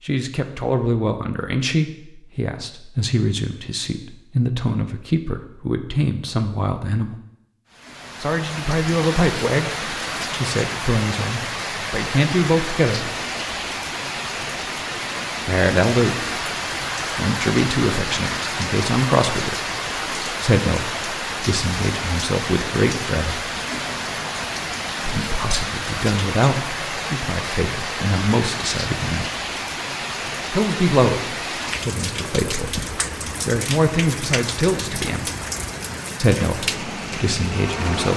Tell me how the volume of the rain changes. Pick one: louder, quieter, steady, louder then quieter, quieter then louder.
steady.